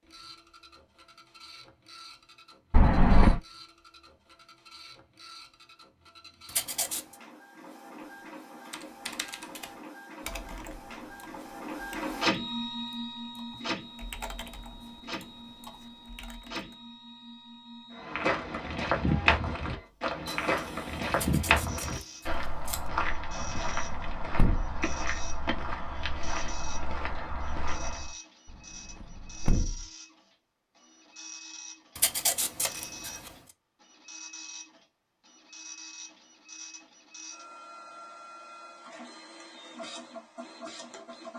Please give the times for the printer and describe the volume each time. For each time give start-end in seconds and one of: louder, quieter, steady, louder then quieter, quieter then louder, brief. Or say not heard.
0.0-41.3 louder then quieter.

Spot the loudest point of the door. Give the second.
3 s.